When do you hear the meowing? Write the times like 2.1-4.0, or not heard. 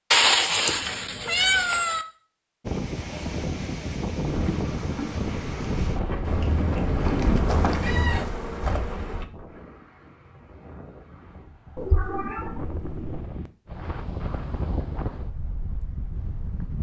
0.1-2.0, 6.2-8.2, 11.8-13.2.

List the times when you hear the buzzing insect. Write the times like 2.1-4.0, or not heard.
4.2-9.2.